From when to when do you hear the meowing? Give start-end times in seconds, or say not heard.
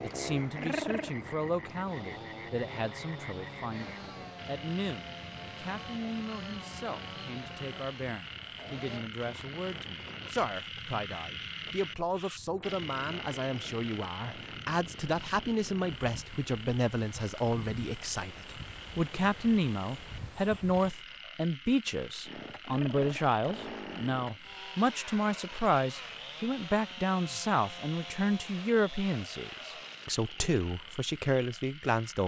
0.6-1.1, 22.6-23.4.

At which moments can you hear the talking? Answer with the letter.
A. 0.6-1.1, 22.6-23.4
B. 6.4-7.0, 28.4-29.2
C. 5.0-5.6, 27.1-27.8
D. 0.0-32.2
D.